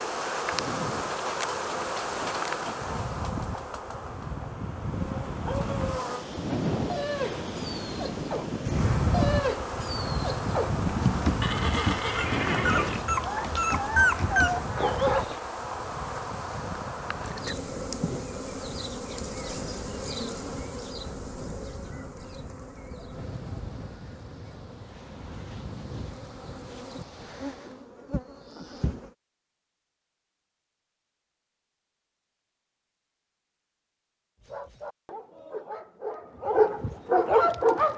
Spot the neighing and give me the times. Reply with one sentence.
You can hear the neighing from 11.4 to 13.1 s.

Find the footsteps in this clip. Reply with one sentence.
The footsteps can't be heard in this clip.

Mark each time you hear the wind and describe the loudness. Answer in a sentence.
You can hear the wind from 0.0 to 27.9 s, getting louder then quieter.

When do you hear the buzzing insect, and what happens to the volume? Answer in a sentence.
The buzzing insect can be heard from 0.0 to 6.2 s, getting quieter; and from 8.8 to 29.1 s, getting quieter.